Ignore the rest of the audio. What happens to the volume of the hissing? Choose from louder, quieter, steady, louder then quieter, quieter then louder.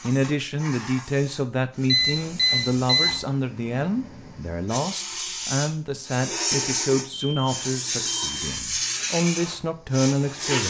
louder.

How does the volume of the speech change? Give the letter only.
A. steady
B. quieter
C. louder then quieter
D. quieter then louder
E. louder
A.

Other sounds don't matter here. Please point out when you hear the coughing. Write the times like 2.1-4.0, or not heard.
not heard.